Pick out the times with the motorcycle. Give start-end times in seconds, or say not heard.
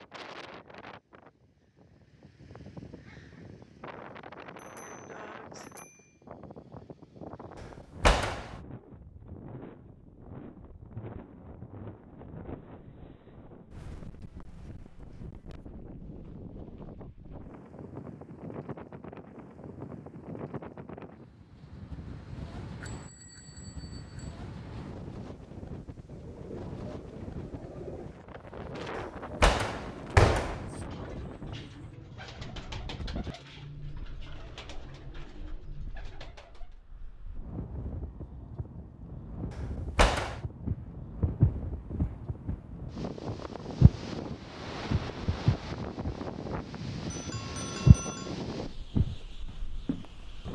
not heard.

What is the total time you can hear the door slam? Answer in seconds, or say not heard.
3 s.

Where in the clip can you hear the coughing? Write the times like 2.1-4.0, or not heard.
not heard.